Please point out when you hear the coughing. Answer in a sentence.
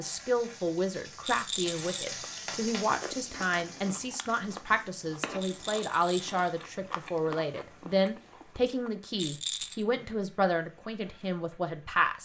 You can't hear the coughing here.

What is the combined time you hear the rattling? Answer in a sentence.
The rattling can be heard for 3 seconds in total.